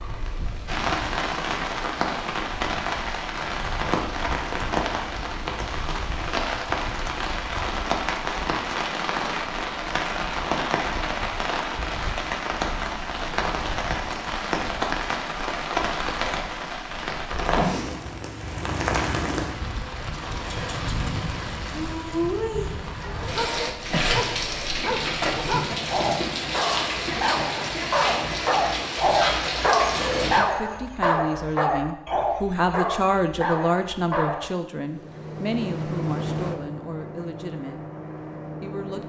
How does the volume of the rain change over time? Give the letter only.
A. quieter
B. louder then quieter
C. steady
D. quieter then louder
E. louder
C.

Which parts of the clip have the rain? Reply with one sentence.
You can hear the rain from 0.0 to 30.4 s.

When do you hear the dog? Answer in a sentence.
The dog can be heard from 23.0 to 34.5 s.